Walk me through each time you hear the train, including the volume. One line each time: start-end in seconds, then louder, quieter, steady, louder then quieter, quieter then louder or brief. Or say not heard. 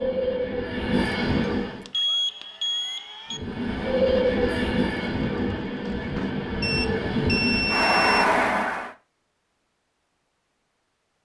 0.0-1.9 brief
3.3-8.9 quieter then louder.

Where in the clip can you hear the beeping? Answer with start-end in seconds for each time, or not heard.
1.9-3.4, 6.6-8.3.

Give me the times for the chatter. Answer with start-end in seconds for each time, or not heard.
not heard.